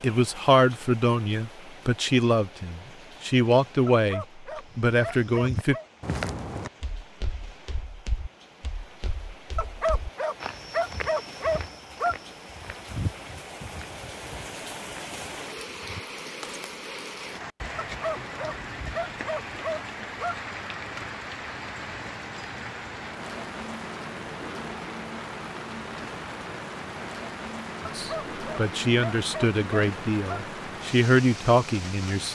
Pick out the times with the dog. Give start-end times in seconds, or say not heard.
3.9-5.8, 9.6-12.2, 17.8-20.4, 27.9-30.4.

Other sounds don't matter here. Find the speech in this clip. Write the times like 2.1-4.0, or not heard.
0.0-5.8, 27.8-32.3.